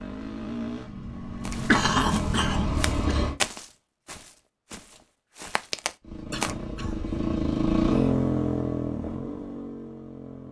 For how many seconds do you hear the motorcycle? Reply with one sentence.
The motorcycle can be heard for 8 seconds in total.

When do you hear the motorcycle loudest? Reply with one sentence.
The loudest moment of the motorcycle is at 8 seconds.